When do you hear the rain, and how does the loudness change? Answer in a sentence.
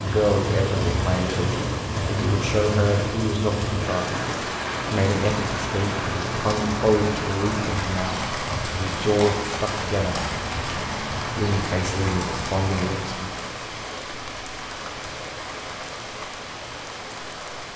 The rain can be heard from 0.0 to 17.7 s, getting quieter.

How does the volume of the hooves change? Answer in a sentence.
The volume of the hooves stays about the same.